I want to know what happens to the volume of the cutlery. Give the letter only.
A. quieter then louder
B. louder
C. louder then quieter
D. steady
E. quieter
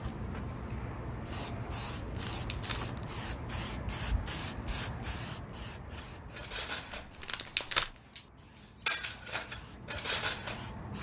A.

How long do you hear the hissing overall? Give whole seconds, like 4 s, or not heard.
11 s.